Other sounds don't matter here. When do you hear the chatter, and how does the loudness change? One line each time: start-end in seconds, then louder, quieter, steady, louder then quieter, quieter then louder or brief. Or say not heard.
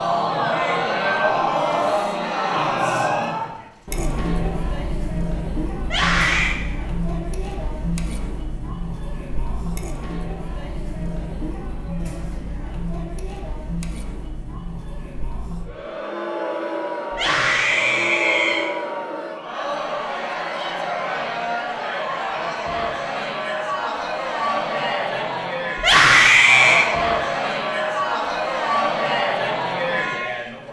0.0-30.6 quieter then louder.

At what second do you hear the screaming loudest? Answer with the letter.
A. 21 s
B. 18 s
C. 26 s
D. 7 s
C.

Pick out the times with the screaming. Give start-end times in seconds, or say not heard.
5.8-6.5, 17.1-18.7, 25.8-26.9.